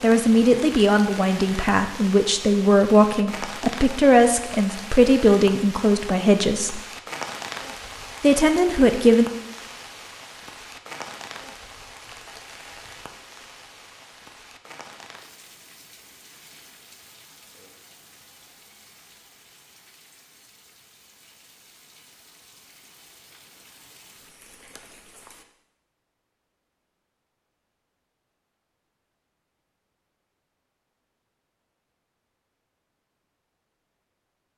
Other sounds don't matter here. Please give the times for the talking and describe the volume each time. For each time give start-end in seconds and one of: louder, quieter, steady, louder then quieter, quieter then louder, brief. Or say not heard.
0.0-6.8 steady
8.2-9.2 brief.